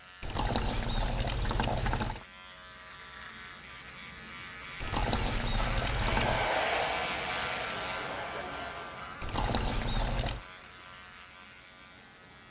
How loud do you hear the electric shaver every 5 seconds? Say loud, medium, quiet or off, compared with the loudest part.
medium, loud, medium.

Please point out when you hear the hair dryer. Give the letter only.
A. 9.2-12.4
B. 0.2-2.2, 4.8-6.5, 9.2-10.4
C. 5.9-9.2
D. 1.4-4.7
C.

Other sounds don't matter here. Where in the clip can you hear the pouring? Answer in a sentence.
The pouring can be heard from 0.2 to 2.2 s, from 4.8 to 6.5 s and from 9.2 to 10.4 s.